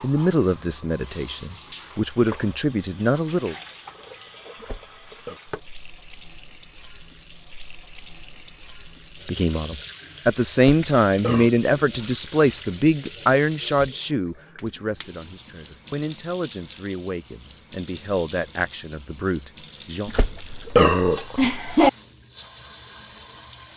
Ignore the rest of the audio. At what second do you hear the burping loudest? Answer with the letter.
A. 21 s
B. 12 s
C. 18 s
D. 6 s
A.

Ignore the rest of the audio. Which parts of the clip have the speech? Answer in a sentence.
The speech can be heard from 0.0 to 3.5 s and from 9.2 to 20.1 s.